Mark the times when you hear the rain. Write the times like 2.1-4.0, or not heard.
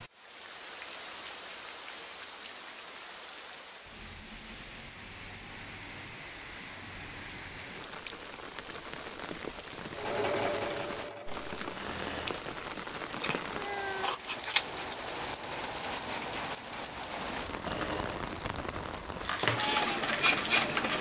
0.0-20.9.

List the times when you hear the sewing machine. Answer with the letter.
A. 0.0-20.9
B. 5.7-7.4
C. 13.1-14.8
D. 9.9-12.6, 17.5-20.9
D.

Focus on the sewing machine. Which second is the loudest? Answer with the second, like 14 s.
20 s.